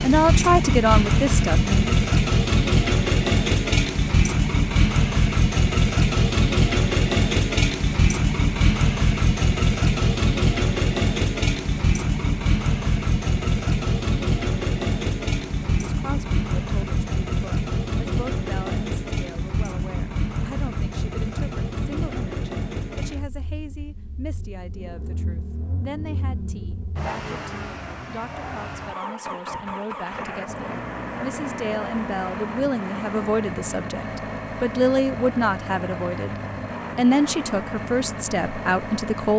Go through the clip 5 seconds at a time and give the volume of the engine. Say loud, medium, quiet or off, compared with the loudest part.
loud, loud, loud, medium, medium, quiet, medium, medium.